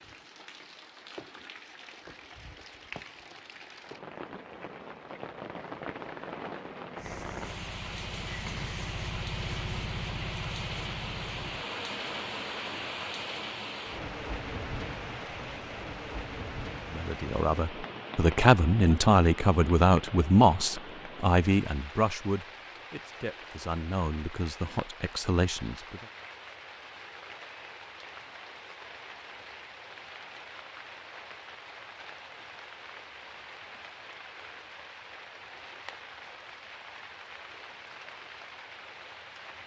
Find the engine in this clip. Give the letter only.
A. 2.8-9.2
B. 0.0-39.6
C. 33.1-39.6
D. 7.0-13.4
D.